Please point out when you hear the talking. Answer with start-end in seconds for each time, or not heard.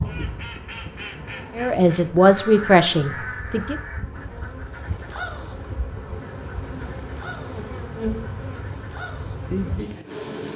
1.6-3.8.